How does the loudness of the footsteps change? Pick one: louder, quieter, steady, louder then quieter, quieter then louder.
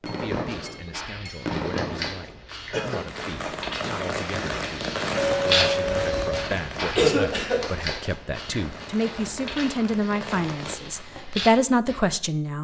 louder then quieter.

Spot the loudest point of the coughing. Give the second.
7 s.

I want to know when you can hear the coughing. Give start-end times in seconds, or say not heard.
2.7-3.2, 7.0-7.7.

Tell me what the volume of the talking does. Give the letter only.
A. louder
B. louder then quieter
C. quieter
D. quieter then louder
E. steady
A.